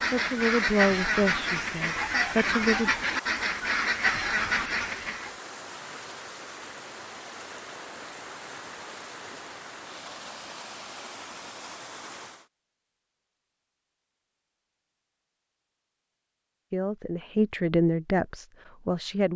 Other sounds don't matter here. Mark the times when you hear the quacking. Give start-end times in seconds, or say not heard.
0.0-5.3.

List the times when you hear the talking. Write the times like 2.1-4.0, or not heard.
0.1-2.9, 16.7-19.3.